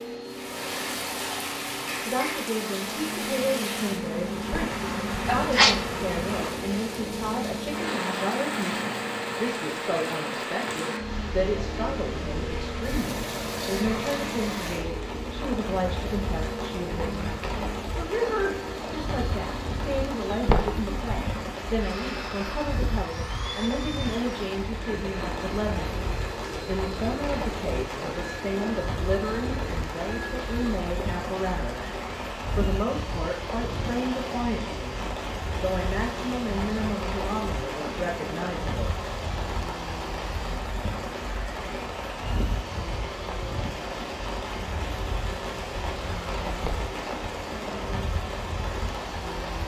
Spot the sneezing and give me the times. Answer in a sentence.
You can hear the sneezing from 4.5 to 5.8 s, from 20.4 to 21.1 s and from 46.6 to 47.3 s.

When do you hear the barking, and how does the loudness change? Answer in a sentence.
The barking can't be heard in this clip.